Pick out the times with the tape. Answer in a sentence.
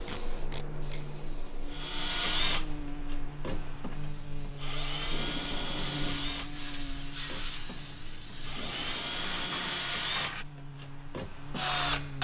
You can hear the tape from 0.1 to 1.1 s, from 5.0 to 6.2 s and from 8.4 to 9.8 s.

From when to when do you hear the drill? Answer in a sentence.
You can hear the drill from 1.6 to 12.1 s.